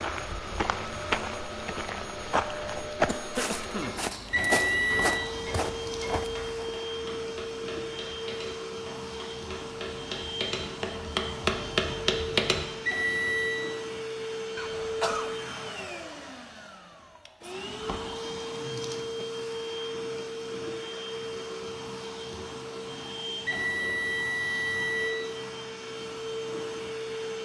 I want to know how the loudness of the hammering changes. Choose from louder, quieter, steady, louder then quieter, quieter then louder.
louder.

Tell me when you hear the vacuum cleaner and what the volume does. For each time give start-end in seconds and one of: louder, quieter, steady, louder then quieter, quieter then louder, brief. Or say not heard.
0.0-27.3 steady.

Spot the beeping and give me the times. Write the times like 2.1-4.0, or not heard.
4.3-5.2, 12.8-13.7, 23.4-25.1.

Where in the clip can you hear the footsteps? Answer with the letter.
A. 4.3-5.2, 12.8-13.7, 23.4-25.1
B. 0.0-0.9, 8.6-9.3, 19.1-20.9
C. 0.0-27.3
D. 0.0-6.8
D.